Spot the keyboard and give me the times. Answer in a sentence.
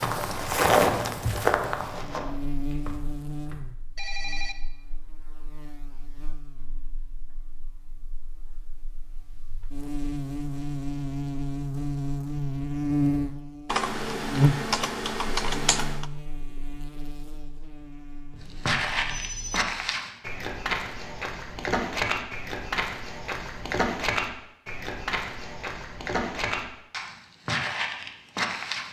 You can hear the keyboard from 13.7 to 16.1 s.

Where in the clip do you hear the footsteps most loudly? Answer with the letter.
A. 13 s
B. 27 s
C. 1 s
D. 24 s
C.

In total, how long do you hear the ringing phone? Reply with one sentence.
You can hear the ringing phone for 3 seconds altogether.